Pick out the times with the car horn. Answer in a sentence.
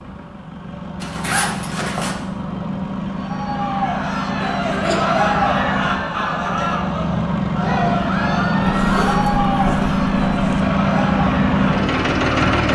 You can't hear the car horn here.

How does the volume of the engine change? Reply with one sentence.
The volume of the engine goes up.